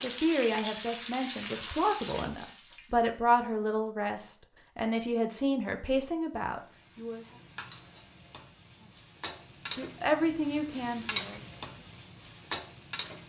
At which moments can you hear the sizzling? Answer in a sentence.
You can hear the sizzling from 0.0 to 3.0 s and from 6.3 to 13.2 s.